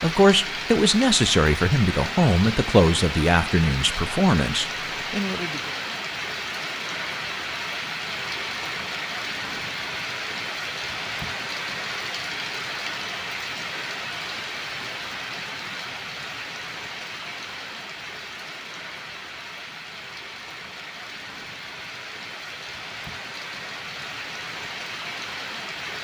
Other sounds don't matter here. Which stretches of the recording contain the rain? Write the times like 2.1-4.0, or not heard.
0.0-25.9.